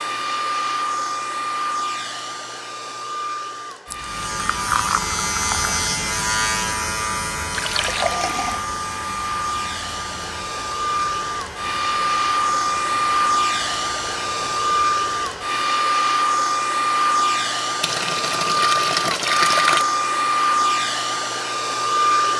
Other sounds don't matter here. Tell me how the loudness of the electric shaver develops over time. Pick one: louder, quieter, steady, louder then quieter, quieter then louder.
quieter.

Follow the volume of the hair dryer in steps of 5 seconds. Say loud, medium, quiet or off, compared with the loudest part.
medium, medium, loud, loud, loud.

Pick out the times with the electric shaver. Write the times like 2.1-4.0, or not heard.
4.0-15.6.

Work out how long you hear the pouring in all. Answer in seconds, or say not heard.
5 s.